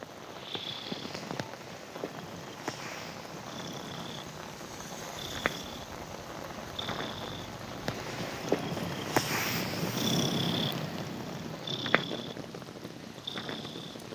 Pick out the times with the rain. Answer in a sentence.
The rain can be heard from 0.0 to 14.1 s.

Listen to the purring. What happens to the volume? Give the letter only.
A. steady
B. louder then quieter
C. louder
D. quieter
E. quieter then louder
B.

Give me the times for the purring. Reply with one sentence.
The purring can be heard from 0.0 to 14.1 s.